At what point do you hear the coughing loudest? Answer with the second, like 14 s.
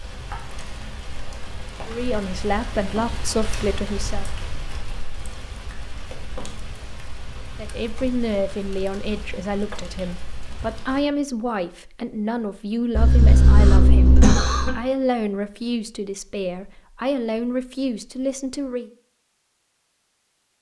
14 s.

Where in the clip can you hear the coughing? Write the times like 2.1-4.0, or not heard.
12.9-14.8.